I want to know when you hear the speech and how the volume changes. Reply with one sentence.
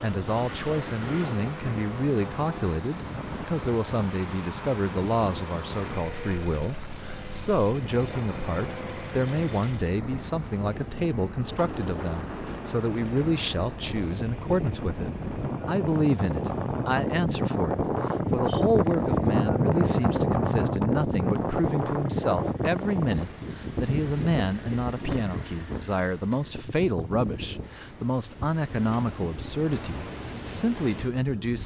The speech can be heard from 0.0 to 31.6 s, at a steady volume.